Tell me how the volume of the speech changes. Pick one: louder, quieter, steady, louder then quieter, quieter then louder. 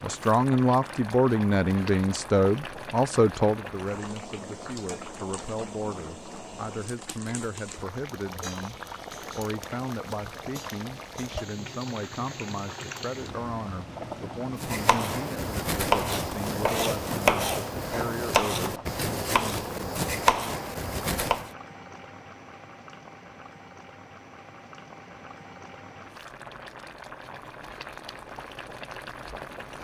quieter.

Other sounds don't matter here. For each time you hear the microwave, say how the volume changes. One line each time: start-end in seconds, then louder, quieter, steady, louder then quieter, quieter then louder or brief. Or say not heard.
not heard.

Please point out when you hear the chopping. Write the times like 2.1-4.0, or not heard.
14.6-21.5.